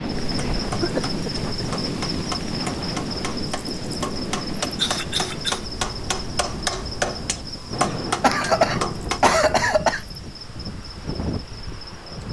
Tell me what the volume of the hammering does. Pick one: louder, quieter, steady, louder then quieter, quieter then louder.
louder.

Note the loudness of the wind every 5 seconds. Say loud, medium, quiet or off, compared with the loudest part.
loud, medium, medium.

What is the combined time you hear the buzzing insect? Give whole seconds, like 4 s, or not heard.
12 s.